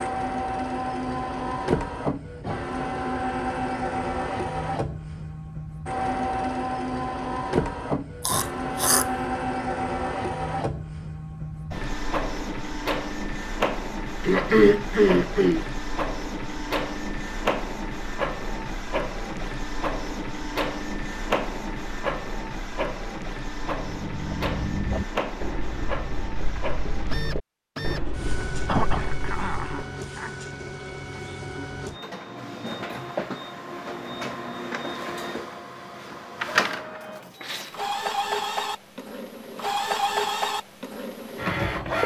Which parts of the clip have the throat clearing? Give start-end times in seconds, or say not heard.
8.2-9.1, 14.2-15.7, 28.6-30.4.